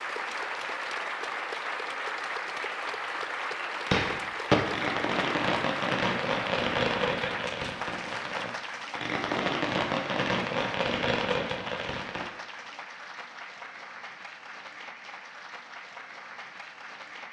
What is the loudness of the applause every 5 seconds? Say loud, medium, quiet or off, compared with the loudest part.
loud, loud, medium, medium.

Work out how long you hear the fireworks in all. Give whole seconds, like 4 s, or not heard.
8 s.